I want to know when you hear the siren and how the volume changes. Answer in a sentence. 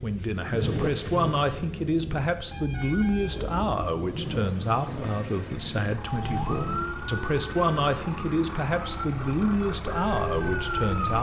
You can hear the siren from 6.0 to 11.1 s, getting quieter then louder.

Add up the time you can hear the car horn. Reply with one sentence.
You can hear the car horn for 2 seconds altogether.